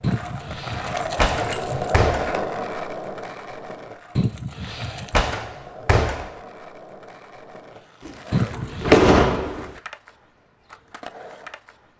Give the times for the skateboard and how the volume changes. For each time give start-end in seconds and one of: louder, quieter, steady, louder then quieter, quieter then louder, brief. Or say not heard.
0.0-11.9 quieter.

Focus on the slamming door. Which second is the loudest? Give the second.
9 s.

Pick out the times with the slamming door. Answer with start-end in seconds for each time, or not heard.
1.1-2.4, 5.1-6.3, 8.1-9.8.